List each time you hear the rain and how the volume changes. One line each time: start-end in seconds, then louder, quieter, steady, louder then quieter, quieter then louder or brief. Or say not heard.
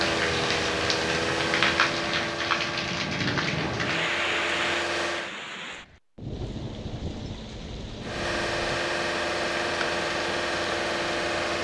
0.0-11.5 quieter.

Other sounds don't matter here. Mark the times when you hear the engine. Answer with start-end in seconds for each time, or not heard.
0.0-5.3, 8.0-11.5.